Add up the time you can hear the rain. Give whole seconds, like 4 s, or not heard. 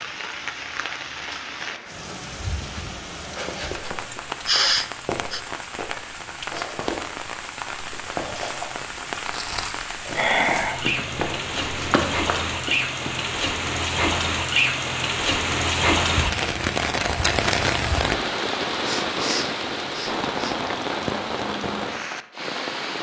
23 s.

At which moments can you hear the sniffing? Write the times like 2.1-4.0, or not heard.
4.1-5.4, 10.2-10.8, 18.9-20.6.